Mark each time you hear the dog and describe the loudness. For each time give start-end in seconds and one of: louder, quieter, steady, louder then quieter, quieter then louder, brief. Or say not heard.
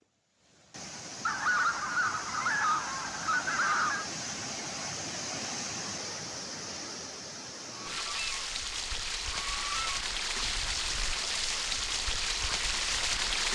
not heard.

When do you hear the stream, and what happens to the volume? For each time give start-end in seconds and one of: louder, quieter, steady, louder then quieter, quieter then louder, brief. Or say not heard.
0.0-13.5 louder.